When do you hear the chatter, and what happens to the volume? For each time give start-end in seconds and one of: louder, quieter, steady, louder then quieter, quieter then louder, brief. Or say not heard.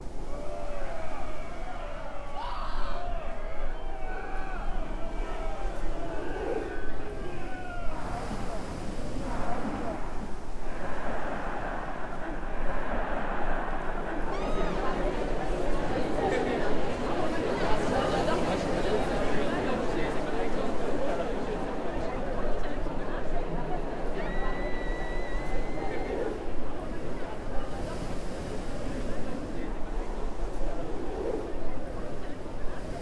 0.1-32.9 louder then quieter.